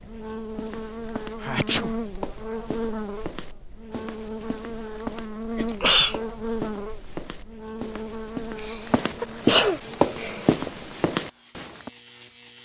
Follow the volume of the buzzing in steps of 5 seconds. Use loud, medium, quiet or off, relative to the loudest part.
loud, loud, medium.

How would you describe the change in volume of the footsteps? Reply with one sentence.
The loudness of the footsteps goes up.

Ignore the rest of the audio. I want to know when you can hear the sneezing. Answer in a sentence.
The sneezing can be heard from 1.4 to 1.9 s, from 5.5 to 6.2 s and from 8.6 to 10.6 s.